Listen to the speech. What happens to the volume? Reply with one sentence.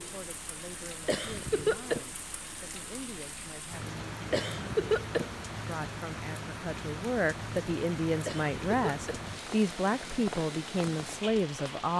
The loudness of the speech goes up.